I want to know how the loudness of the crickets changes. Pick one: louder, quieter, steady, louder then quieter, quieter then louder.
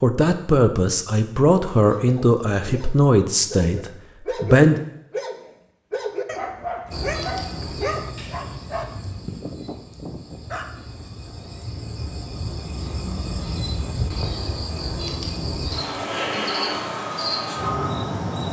quieter then louder.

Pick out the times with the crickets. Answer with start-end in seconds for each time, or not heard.
6.9-18.4.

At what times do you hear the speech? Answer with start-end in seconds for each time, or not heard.
0.0-4.8.